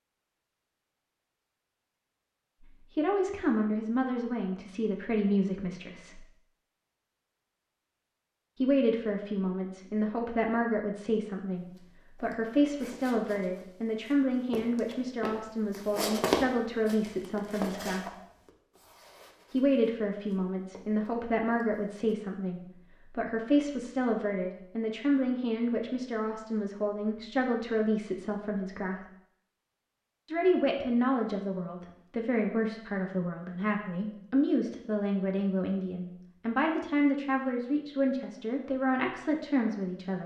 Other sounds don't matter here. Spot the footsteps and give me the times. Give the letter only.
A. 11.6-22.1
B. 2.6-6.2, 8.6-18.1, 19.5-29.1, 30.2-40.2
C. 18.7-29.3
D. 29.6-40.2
A.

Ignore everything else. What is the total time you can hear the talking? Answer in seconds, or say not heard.
33 s.